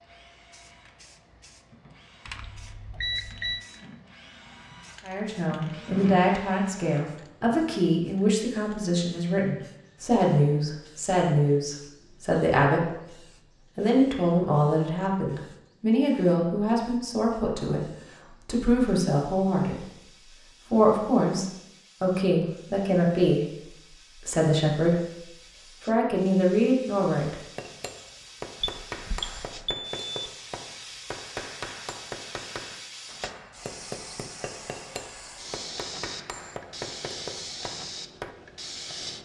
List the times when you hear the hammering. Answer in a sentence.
The hammering can be heard from 27.6 to 38.4 s.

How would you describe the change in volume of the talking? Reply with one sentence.
The volume of the talking stays about the same.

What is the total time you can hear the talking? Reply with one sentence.
You can hear the talking for 22 seconds altogether.